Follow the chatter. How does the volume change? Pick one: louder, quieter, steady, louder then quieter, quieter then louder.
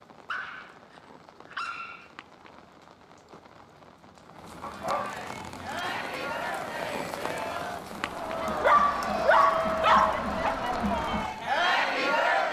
louder.